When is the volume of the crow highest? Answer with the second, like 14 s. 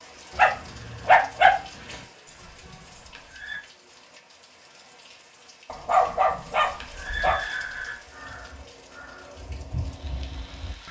10 s.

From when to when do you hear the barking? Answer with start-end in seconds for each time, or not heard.
0.3-1.9, 5.7-7.4.